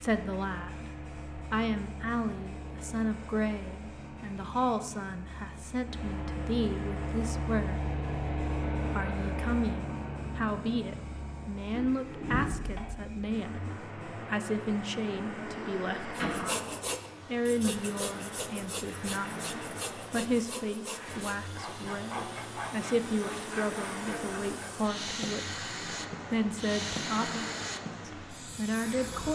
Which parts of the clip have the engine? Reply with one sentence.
The engine can be heard from 0.0 to 29.3 s.